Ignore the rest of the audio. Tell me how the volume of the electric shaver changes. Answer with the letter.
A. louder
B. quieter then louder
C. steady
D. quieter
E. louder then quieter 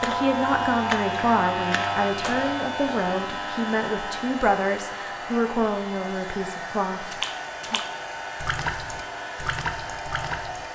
D.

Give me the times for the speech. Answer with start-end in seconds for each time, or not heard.
0.0-7.8.